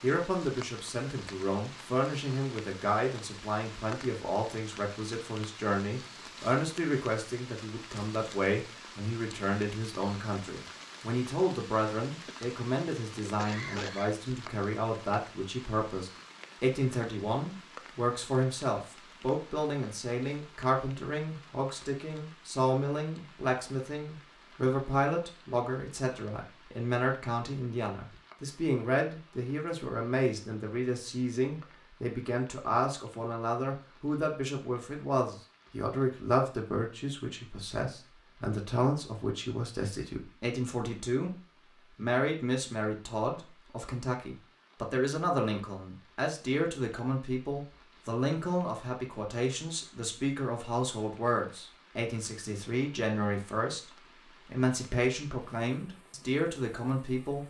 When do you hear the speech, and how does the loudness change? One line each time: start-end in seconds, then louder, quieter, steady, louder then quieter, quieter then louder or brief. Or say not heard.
0.0-41.4 steady
42.0-57.4 steady.